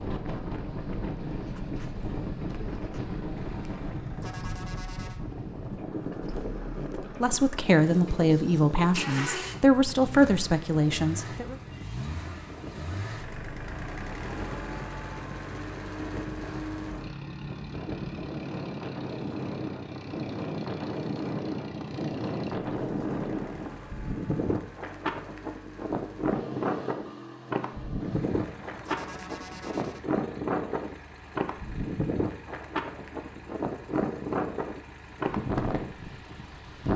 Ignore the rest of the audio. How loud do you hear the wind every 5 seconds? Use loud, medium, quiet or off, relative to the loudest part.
medium, medium, quiet, medium, loud, loud, loud, loud.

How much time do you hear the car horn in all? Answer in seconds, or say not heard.
4 s.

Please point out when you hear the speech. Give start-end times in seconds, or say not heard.
6.8-11.6.